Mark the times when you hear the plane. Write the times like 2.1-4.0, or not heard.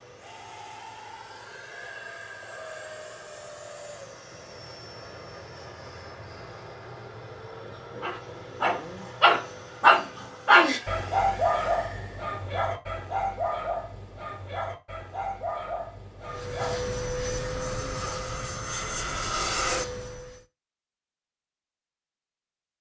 0.0-12.3, 16.2-20.4.